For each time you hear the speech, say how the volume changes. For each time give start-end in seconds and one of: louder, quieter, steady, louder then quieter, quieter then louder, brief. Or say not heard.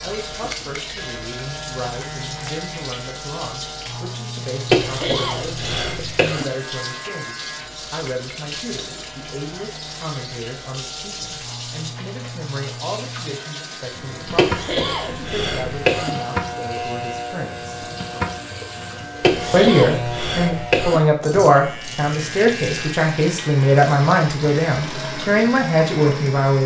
0.0-17.8 steady
19.5-26.6 steady.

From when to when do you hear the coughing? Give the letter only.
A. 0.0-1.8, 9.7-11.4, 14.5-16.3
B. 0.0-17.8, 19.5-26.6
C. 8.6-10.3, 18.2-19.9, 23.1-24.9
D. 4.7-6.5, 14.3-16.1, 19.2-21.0
D.